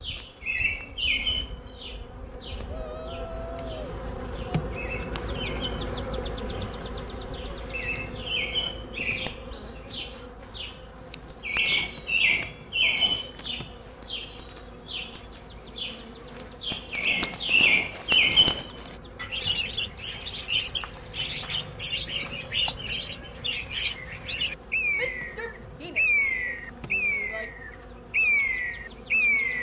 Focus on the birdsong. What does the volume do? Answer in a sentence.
The volume of the birdsong goes up.